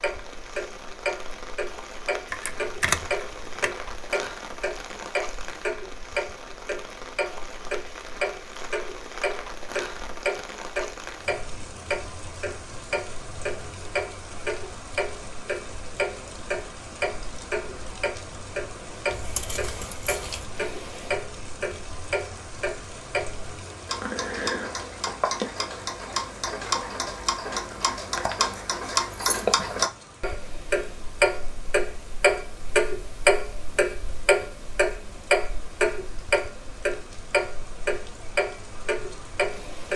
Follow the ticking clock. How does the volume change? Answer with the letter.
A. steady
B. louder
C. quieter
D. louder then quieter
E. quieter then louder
B.